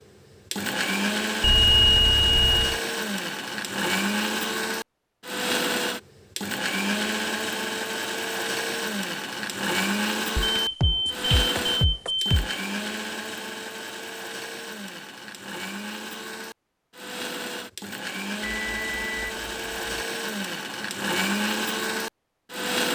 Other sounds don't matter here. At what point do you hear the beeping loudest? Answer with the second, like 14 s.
2 s.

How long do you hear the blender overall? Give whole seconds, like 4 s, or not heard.
23 s.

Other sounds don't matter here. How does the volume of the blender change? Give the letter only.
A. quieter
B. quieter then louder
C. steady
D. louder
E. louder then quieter
B.